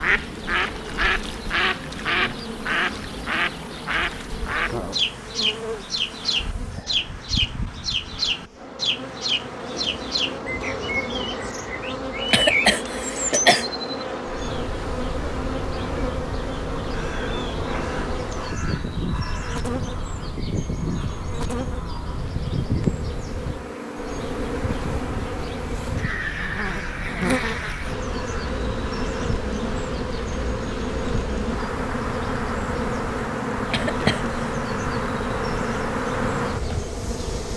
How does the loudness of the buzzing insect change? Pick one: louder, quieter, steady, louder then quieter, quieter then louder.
louder.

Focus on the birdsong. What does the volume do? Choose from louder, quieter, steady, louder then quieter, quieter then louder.
quieter.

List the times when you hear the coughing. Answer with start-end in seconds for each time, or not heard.
12.1-13.7, 33.5-34.3.